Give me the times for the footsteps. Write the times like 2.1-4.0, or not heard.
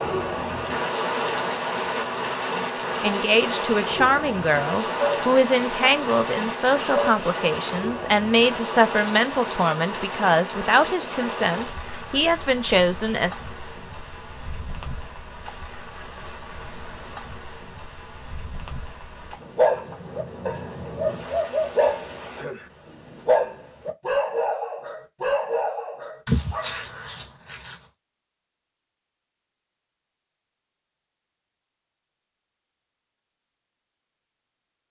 not heard.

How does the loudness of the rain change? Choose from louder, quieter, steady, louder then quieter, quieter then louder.
quieter.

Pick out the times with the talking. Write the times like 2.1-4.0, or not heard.
3.0-13.3.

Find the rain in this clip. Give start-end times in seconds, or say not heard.
0.0-22.4.